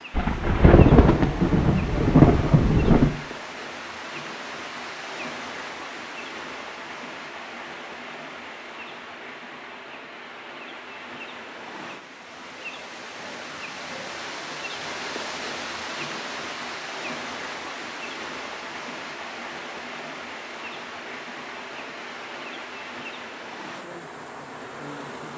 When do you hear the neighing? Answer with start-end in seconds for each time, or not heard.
not heard.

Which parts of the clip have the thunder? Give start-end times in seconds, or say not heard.
0.1-3.1.